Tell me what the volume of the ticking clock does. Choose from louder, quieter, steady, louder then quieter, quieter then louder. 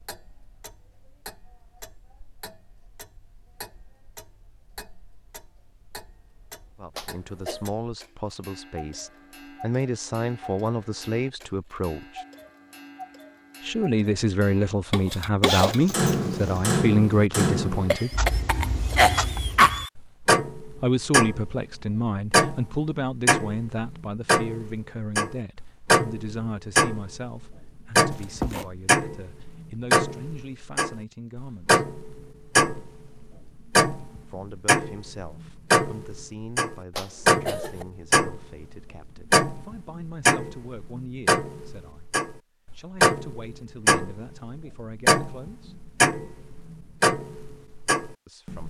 louder.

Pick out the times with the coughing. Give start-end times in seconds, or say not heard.
7.0-7.7, 17.9-19.9, 37.0-37.9.